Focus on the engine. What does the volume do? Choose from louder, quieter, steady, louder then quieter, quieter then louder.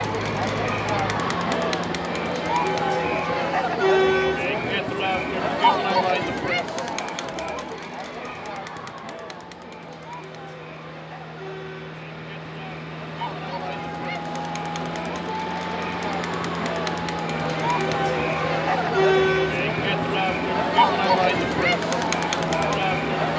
quieter then louder.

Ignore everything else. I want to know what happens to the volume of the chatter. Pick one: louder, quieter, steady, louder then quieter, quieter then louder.
quieter then louder.